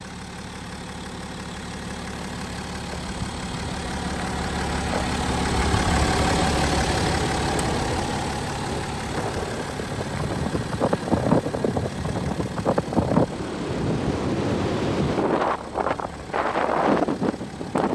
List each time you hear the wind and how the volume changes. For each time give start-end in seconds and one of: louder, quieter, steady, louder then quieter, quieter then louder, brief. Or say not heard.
7.5-17.8 louder.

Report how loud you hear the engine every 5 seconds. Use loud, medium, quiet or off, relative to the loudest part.
medium, loud, medium, quiet.